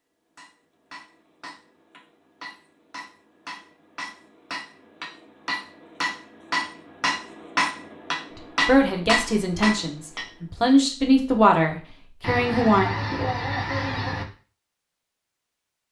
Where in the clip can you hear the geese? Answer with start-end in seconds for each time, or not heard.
12.2-14.2.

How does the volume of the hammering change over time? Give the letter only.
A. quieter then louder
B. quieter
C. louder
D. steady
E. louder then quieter
C.